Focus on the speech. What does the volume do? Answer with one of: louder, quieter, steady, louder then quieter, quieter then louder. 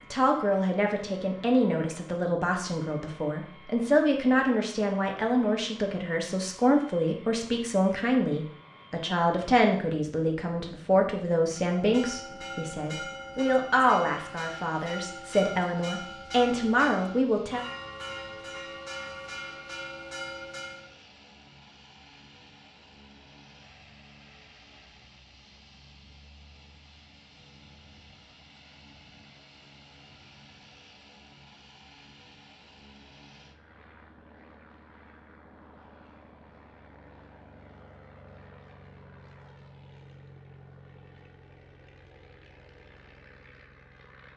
steady.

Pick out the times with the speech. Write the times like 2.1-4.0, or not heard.
0.1-17.6.